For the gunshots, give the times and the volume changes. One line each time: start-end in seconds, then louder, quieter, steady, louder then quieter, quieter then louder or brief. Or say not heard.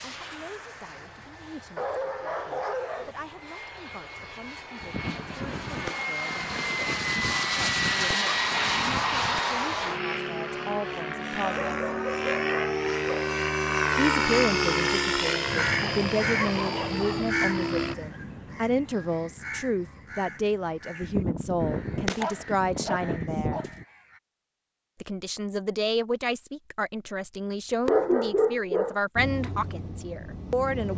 4.8-9.4 quieter then louder
21.0-23.9 brief.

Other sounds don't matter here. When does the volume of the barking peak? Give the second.
28 s.